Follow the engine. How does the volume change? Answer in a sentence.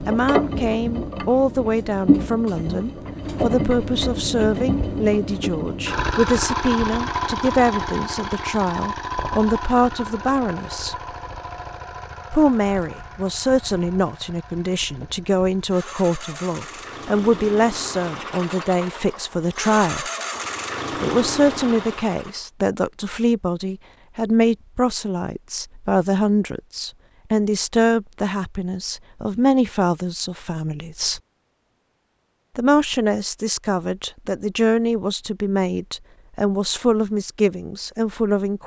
The volume of the engine goes down, then up.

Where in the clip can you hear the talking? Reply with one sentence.
The talking can be heard from 0.0 to 10.9 s, from 12.3 to 20.1 s, from 21.0 to 31.2 s and from 32.5 to 38.6 s.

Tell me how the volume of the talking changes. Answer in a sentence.
The loudness of the talking stays about the same.